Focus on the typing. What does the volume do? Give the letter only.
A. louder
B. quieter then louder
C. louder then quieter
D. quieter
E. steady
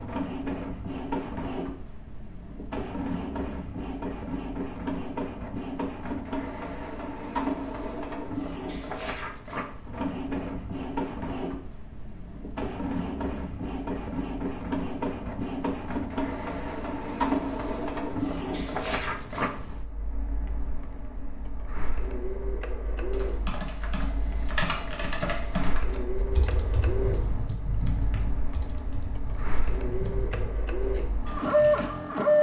D.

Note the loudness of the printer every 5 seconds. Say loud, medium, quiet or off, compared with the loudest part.
medium, medium, medium, medium, quiet, quiet, loud.